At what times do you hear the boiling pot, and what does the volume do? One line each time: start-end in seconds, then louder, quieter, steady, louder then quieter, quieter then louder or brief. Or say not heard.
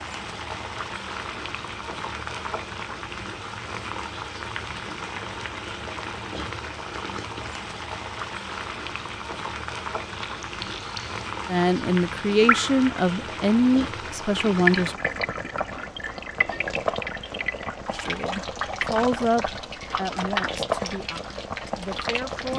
0.0-22.5 steady.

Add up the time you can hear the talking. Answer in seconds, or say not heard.
8 s.